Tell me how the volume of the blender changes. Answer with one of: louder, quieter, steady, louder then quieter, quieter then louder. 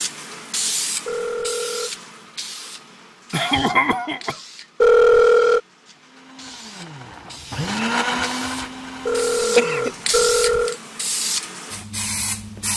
louder then quieter.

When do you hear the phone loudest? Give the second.
5 s.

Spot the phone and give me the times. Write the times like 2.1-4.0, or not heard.
1.1-1.9, 4.8-5.6, 9.1-10.8.